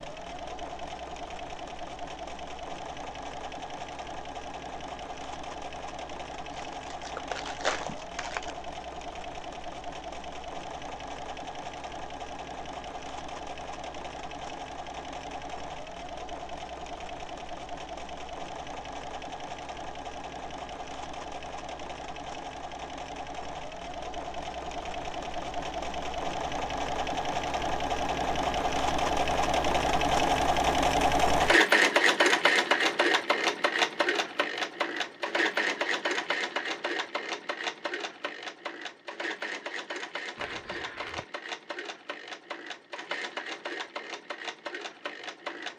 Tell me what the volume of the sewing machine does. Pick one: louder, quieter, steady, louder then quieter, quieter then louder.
louder then quieter.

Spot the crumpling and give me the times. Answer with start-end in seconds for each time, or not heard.
6.5-8.6, 40.4-41.2.